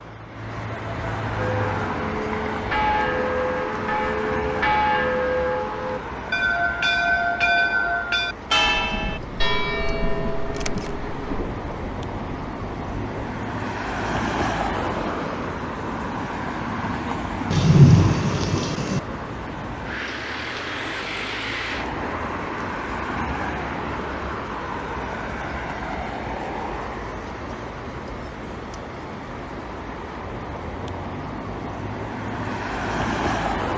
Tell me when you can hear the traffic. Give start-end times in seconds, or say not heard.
0.0-33.7.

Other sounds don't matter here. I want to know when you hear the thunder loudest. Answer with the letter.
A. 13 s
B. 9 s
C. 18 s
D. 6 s
C.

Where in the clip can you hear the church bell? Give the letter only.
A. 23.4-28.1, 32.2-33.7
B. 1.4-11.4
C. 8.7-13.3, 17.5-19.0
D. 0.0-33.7
B.